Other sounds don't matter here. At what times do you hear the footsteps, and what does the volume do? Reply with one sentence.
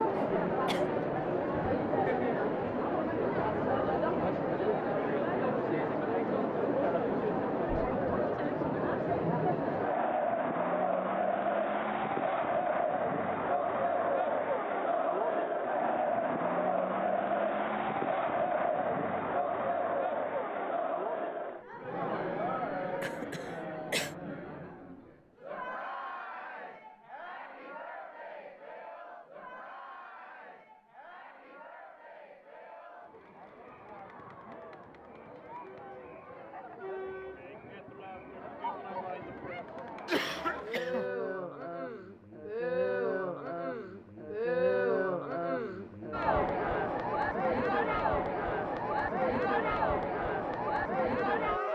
You can't hear the footsteps here.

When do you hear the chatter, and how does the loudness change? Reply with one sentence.
The chatter can be heard from 0.0 to 51.6 s, getting quieter then louder.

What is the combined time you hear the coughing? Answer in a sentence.
You can hear the coughing for 3 seconds altogether.